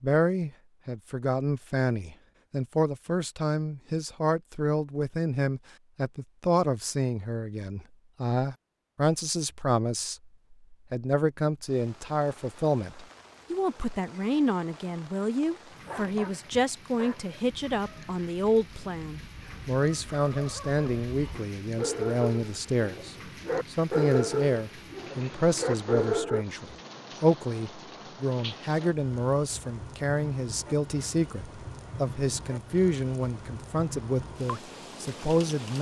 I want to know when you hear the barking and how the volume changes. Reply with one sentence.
The barking can be heard from 15.8 to 26.4 s, getting louder.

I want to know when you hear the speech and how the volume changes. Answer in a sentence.
You can hear the speech from 0.0 to 35.7 s, at a steady volume.